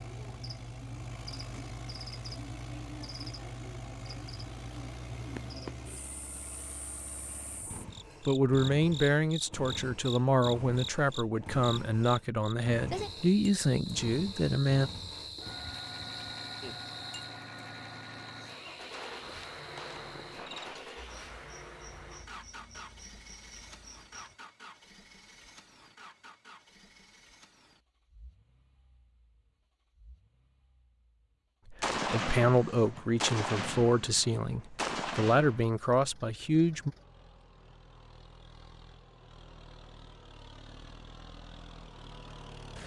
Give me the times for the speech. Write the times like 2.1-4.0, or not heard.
8.2-14.9, 31.7-36.9.